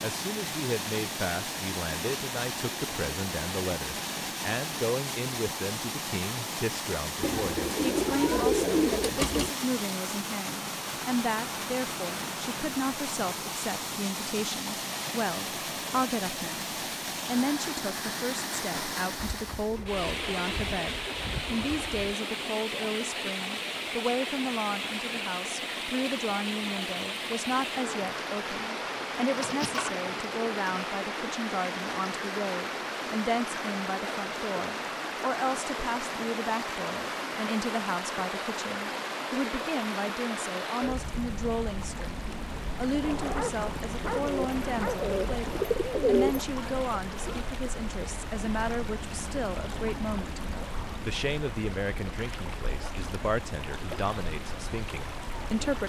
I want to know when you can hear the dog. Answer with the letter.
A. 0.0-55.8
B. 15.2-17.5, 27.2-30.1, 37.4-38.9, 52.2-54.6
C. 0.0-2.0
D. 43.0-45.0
D.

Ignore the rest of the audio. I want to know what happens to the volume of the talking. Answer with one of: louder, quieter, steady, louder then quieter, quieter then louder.
steady.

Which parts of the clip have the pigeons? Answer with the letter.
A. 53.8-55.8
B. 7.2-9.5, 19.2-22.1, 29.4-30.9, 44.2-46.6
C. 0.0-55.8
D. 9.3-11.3
B.